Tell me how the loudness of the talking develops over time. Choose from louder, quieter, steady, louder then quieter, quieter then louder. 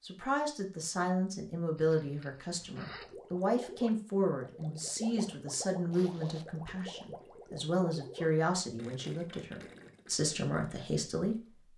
steady.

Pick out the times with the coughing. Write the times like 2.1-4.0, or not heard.
not heard.